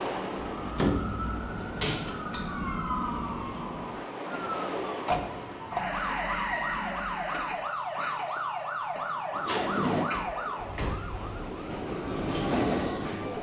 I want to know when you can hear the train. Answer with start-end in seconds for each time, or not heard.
0.0-5.8, 9.3-13.3.